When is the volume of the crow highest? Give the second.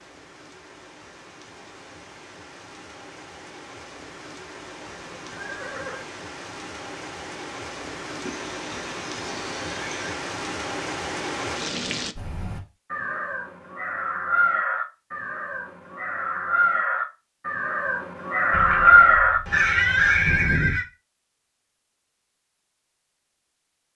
19 s.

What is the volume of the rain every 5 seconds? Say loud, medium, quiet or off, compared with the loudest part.
quiet, medium, loud, off, off.